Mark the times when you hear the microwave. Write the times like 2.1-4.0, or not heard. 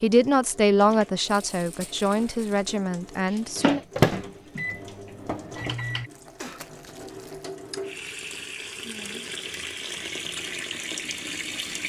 3.5-6.1.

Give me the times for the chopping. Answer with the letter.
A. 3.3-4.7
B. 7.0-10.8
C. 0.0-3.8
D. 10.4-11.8
A.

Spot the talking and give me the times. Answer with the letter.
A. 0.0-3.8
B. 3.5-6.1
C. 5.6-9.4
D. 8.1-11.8
A.